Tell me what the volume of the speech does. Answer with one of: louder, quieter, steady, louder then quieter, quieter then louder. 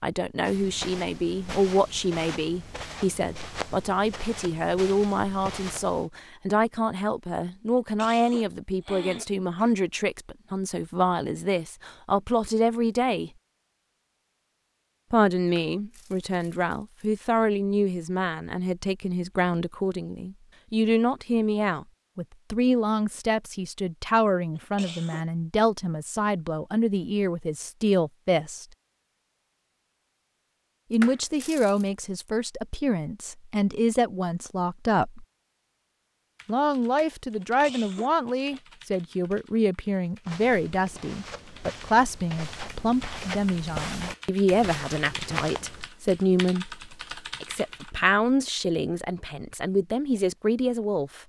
steady.